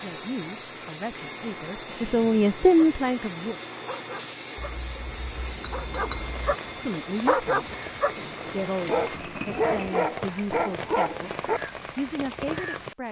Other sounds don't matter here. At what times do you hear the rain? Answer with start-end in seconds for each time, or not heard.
6.2-13.0.